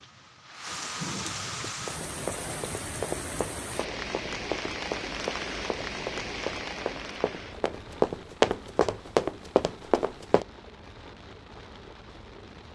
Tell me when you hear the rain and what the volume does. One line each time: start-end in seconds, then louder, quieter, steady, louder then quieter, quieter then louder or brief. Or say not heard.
0.0-12.6 quieter.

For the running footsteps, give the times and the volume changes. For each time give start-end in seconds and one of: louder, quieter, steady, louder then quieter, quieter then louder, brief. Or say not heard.
1.6-10.4 louder.